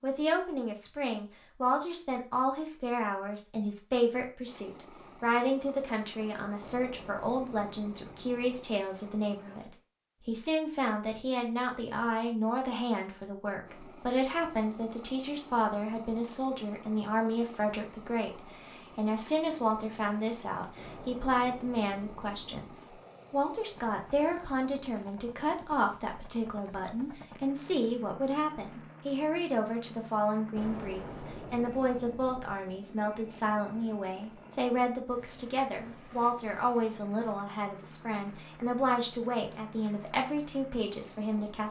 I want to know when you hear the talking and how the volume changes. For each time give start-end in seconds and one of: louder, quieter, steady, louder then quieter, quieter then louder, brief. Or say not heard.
0.0-41.6 steady.